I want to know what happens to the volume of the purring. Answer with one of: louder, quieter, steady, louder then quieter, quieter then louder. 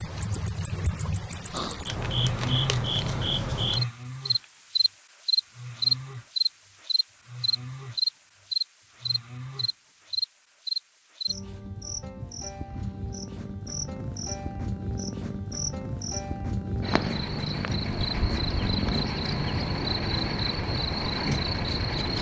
louder.